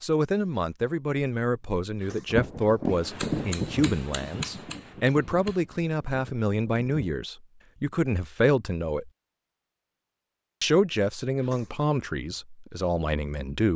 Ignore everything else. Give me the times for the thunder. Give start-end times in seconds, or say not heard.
2.2-7.1.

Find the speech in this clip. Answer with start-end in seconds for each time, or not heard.
0.0-9.1, 10.6-13.7.